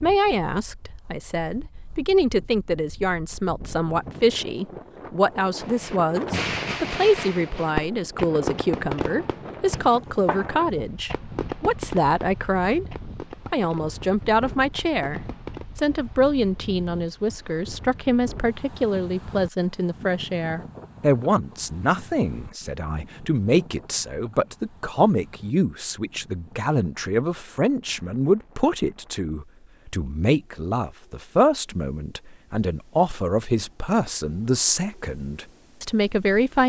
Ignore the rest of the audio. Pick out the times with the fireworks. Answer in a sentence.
You can hear the fireworks from 5.6 to 15.7 s.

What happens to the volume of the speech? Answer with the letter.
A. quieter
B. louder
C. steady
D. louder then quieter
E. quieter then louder
C.